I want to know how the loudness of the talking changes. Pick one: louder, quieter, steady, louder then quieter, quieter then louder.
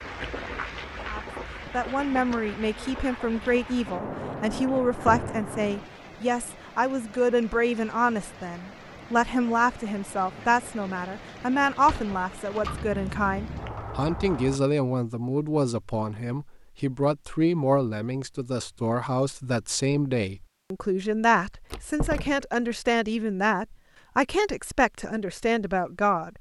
steady.